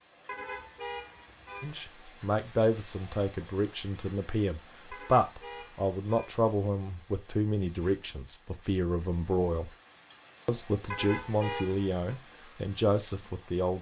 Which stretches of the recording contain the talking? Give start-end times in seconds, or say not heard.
1.6-9.7, 10.4-13.7.